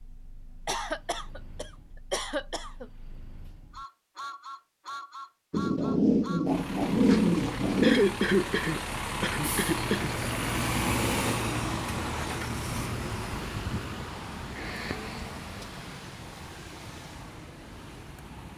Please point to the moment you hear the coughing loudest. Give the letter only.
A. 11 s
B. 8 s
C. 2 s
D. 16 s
B.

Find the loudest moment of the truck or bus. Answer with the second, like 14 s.
11 s.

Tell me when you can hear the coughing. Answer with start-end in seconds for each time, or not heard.
0.7-2.9, 7.8-10.1, 14.6-15.2.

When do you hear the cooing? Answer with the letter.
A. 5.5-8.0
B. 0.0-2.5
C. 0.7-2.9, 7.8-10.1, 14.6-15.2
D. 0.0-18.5
A.